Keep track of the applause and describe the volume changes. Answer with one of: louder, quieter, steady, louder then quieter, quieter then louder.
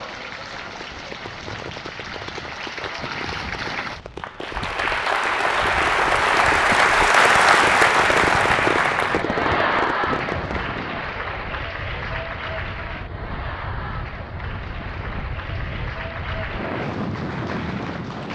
louder then quieter.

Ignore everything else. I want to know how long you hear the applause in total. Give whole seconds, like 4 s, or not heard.
18 s.